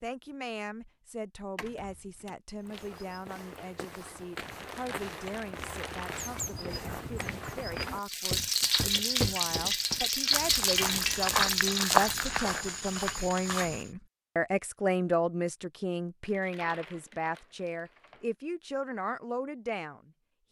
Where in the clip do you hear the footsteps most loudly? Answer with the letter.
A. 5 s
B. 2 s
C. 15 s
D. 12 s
D.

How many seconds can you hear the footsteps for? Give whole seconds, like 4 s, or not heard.
11 s.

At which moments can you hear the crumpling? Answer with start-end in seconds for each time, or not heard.
4.3-6.3, 16.2-18.2.